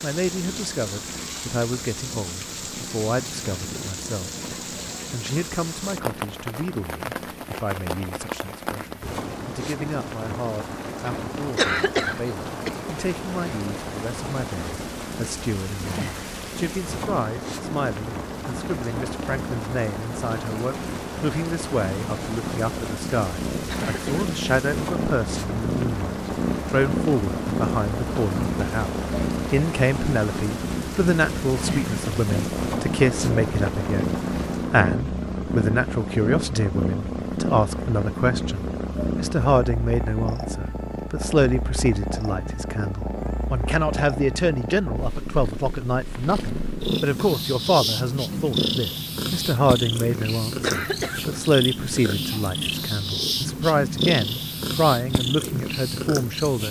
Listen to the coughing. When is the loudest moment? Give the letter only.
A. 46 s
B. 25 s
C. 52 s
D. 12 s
D.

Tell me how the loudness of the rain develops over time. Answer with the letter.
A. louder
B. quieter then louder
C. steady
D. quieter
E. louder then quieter
C.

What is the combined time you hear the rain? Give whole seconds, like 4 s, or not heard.
35 s.